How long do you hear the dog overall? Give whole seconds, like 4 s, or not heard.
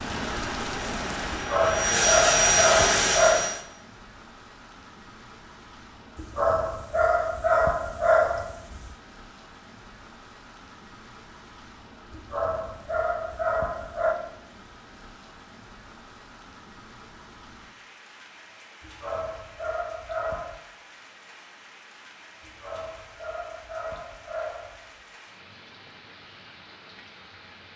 11 s.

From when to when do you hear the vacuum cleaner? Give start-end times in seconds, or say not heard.
0.0-3.6.